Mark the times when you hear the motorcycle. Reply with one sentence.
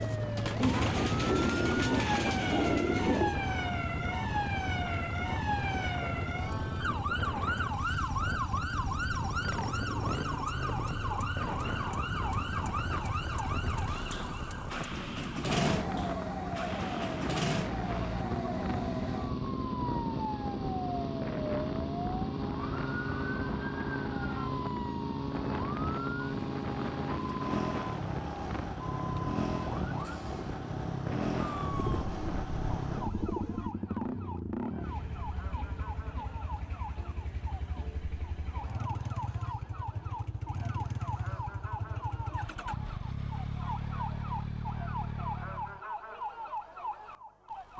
You can hear the motorcycle from 0.1 to 45.8 s.